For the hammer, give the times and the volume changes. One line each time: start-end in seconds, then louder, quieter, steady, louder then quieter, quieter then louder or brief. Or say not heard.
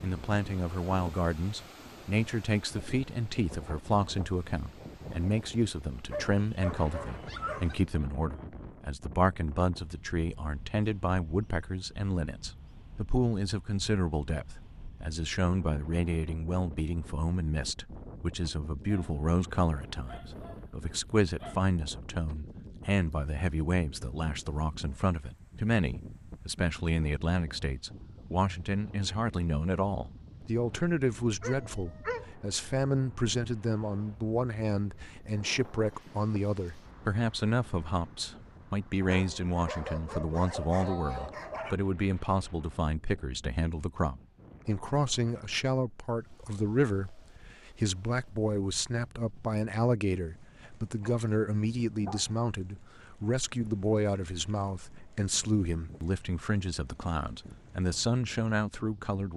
not heard.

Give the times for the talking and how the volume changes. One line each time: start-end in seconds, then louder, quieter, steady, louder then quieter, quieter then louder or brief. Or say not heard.
0.0-59.3 steady.